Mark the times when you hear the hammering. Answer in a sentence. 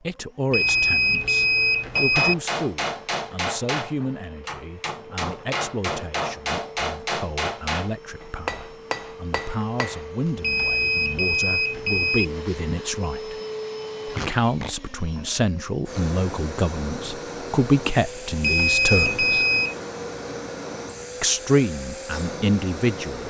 The hammering can be heard from 1.9 to 10.1 s.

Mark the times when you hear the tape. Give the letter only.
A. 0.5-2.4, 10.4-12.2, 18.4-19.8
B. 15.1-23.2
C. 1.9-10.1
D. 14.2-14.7
D.